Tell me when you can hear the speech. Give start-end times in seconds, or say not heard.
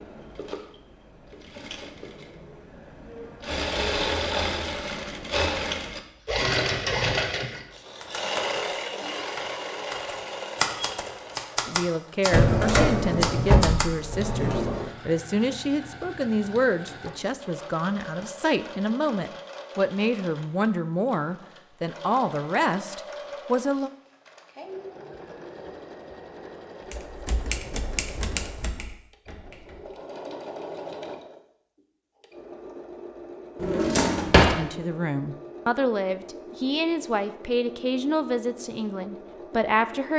11.7-23.9, 34.4-40.1.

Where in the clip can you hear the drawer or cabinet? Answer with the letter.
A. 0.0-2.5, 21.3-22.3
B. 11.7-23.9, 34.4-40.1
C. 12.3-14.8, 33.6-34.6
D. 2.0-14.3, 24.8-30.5
C.